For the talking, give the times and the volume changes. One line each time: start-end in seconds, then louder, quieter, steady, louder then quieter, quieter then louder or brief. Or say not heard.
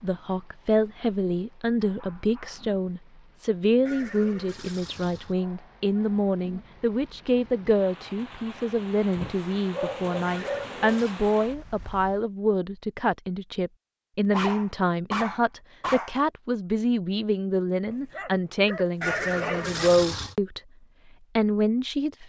0.0-20.6 steady
21.4-22.2 brief.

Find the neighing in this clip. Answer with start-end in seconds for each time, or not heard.
3.9-5.3, 10.2-11.2, 19.0-20.4.